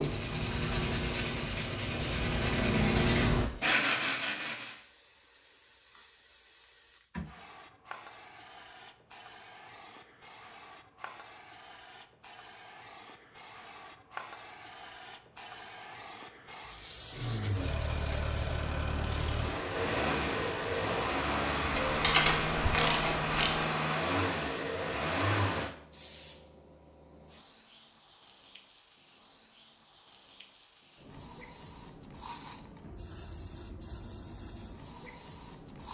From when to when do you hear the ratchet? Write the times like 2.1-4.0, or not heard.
21.9-23.6.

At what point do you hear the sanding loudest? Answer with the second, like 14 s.
3 s.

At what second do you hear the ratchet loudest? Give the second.
22 s.